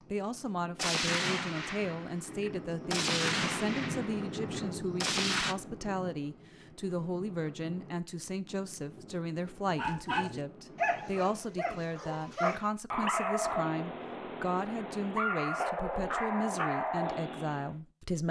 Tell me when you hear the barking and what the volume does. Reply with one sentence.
The barking can be heard from 9.8 to 17.7 s, at a steady volume.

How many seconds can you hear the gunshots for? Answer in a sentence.
The gunshots can be heard for 5 seconds in total.